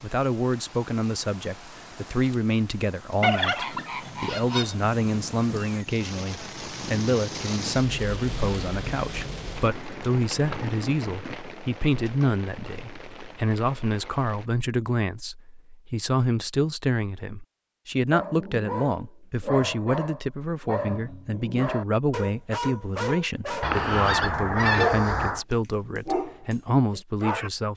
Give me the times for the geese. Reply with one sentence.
You can hear the geese from 3.2 to 4.8 s and from 23.6 to 25.4 s.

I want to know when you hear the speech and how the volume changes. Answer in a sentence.
The speech can be heard from 0.0 to 27.7 s, at a steady volume.